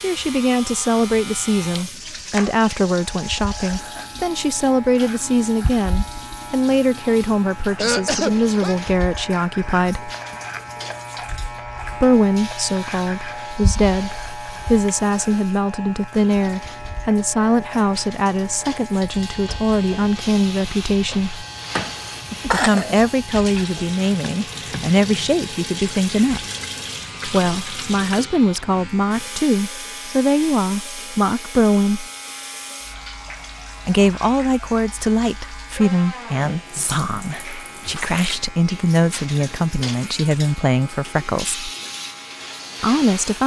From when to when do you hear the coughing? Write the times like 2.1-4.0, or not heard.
7.8-8.8, 21.8-23.0, 38.0-39.6.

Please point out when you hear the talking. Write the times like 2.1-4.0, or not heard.
0.0-10.1, 11.9-21.4, 22.5-26.4, 27.2-32.0, 33.9-41.6, 42.8-43.4.